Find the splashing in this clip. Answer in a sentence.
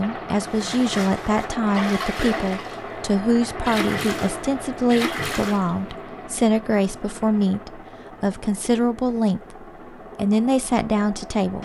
The splashing can be heard from 0.5 to 2.9 s and from 3.6 to 5.7 s.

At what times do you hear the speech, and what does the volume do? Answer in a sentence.
The speech can be heard from 0.0 to 11.6 s, at a steady volume.